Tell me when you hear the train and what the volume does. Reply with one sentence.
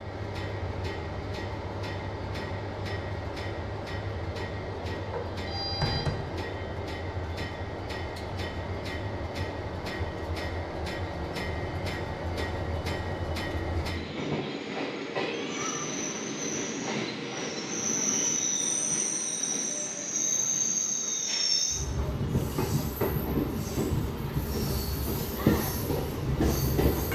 The train can be heard from 0.0 to 27.1 s, getting louder.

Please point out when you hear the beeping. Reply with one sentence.
The beeping can be heard from 5.1 to 6.2 s.